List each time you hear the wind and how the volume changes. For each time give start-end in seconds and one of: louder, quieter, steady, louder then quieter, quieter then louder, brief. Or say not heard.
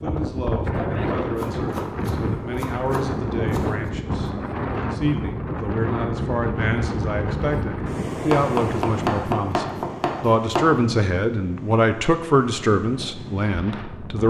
0.0-14.2 quieter.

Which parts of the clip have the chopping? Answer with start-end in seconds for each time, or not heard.
1.4-3.6, 8.3-10.8.